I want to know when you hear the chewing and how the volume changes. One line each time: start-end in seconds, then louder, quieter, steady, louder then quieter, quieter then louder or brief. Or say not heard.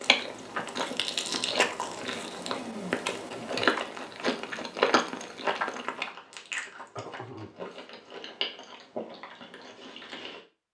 0.0-10.4 quieter.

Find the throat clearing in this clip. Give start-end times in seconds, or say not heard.
2.1-3.5, 6.7-7.9.